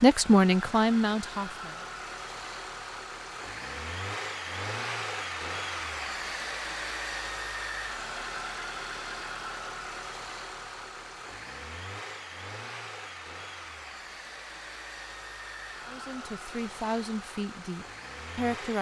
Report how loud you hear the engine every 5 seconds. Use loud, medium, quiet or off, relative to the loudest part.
loud, loud, medium, medium.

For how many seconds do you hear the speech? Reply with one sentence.
You can hear the speech for 5 seconds altogether.